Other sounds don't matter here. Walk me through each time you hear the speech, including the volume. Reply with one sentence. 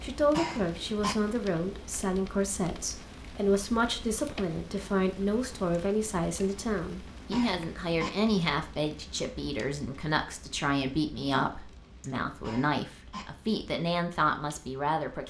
The speech can be heard from 0.0 to 15.2 s, at a steady volume.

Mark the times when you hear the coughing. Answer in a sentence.
You can hear the coughing from 0.3 to 1.1 s, from 7.3 to 8.1 s and from 12.4 to 13.2 s.